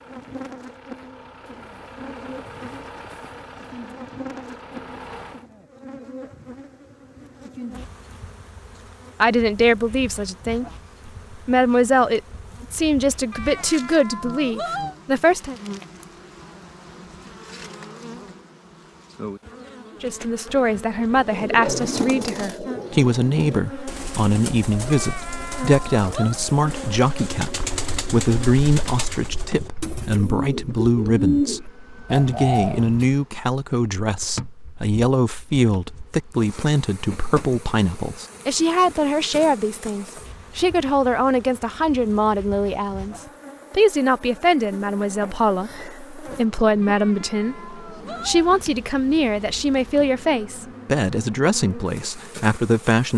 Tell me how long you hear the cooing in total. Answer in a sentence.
The cooing can be heard for 12 seconds in total.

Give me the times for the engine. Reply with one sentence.
You can hear the engine from 0.0 to 5.5 s.